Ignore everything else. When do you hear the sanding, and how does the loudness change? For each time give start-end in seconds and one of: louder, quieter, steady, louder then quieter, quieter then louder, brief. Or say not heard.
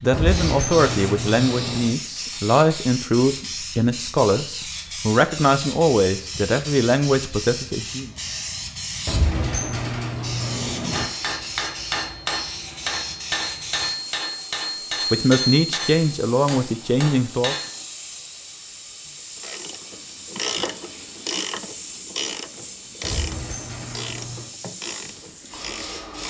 not heard.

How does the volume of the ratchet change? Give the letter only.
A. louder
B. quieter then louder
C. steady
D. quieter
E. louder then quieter
D.